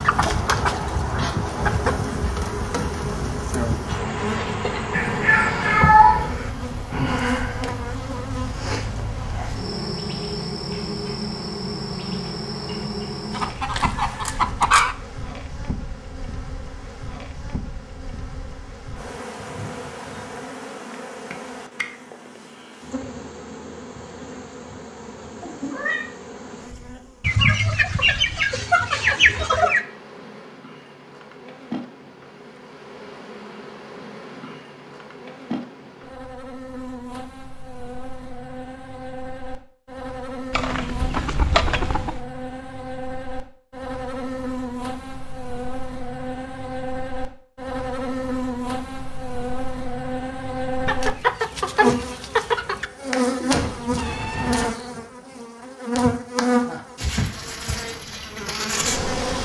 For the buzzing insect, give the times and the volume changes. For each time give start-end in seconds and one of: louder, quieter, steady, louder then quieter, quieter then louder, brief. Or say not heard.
0.0-59.3 quieter then louder.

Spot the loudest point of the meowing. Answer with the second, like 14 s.
6 s.